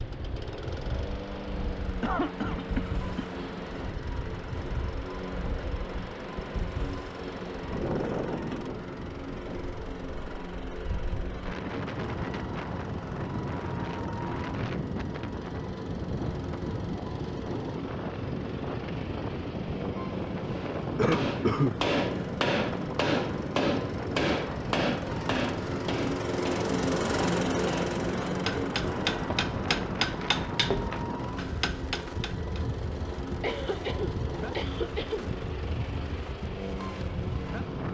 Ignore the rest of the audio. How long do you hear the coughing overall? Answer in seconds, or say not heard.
4 s.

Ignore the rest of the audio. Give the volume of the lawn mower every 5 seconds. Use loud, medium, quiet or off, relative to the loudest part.
medium, medium, medium, medium, medium, loud, medium, medium.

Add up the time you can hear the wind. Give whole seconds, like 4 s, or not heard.
38 s.